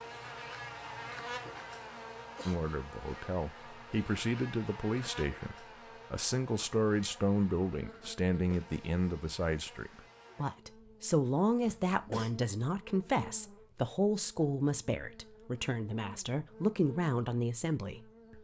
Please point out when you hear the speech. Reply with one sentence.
You can hear the speech from 2.5 to 18.3 s.